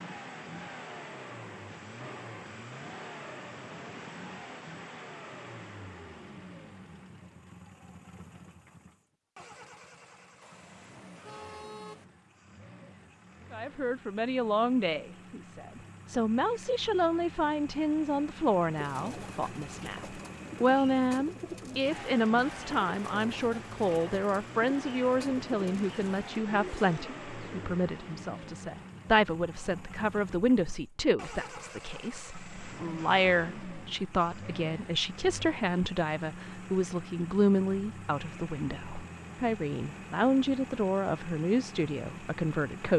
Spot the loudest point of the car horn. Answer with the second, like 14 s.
12 s.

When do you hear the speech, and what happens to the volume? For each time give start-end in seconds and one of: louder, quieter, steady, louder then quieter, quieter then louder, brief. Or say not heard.
13.5-42.9 steady.